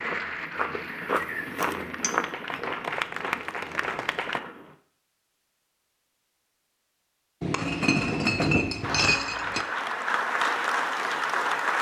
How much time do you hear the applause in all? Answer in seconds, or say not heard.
7 s.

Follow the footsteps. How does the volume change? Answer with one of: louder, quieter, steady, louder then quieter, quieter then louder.
quieter.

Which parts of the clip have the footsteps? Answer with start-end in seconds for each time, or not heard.
0.0-4.8.